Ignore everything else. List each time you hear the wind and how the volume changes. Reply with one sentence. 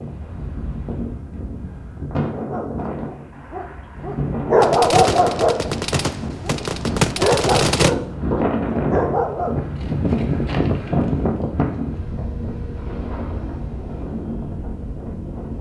The wind can be heard from 0.0 to 15.5 s, getting louder then quieter.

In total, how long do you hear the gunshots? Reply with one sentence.
The gunshots can be heard for 3 seconds in total.